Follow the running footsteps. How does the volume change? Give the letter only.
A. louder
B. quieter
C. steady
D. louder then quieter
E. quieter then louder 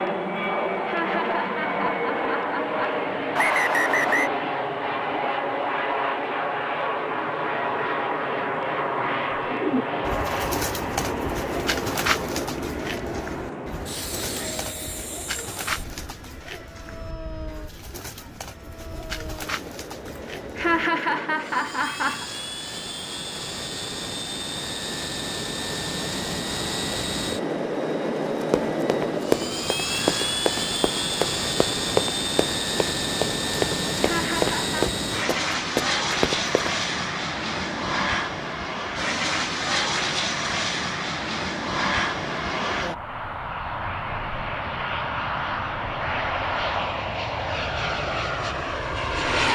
C.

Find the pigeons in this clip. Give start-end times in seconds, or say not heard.
9.3-20.9.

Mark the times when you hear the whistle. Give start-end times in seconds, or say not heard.
3.4-4.3.